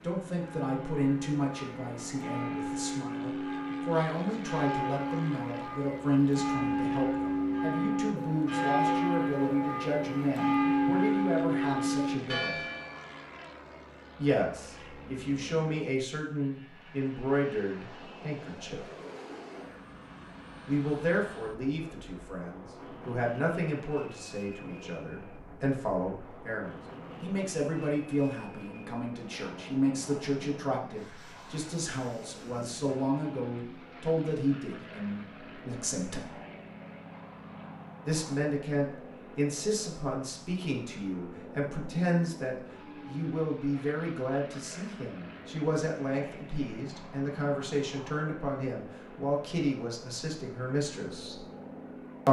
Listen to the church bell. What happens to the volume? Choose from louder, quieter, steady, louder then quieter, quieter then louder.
louder.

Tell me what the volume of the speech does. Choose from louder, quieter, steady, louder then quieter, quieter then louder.
steady.